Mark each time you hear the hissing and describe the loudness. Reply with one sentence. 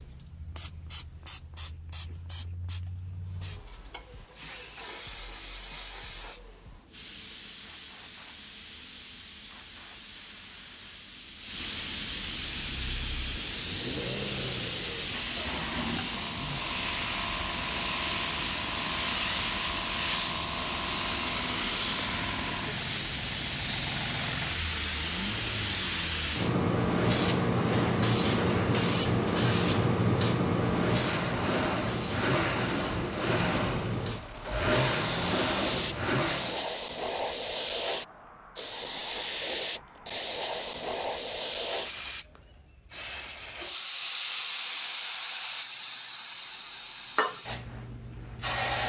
The hissing can be heard from 0.0 to 48.8 s, getting louder then quieter.